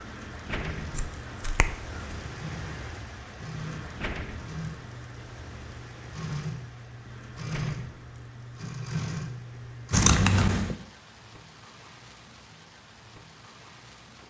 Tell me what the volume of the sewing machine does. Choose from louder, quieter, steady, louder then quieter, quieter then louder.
louder.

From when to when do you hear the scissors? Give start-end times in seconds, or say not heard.
0.9-2.1, 9.9-10.8.